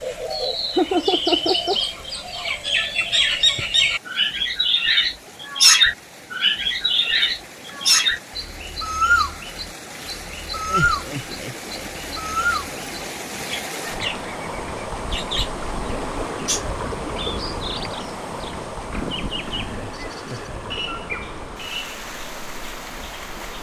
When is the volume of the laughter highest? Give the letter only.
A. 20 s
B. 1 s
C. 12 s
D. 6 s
B.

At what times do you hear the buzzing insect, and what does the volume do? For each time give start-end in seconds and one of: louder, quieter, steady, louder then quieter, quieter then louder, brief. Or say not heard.
not heard.